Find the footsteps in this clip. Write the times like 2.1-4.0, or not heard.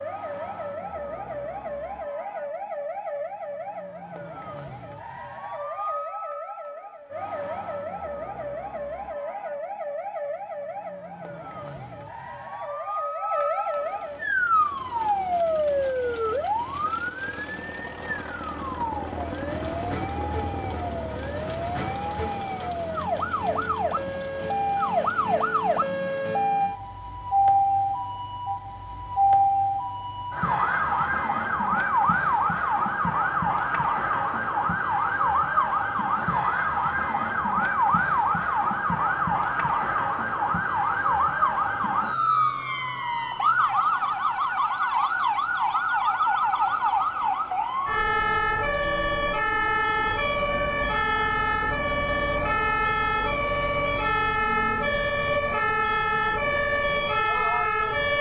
not heard.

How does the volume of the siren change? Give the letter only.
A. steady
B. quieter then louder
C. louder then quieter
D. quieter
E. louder
E.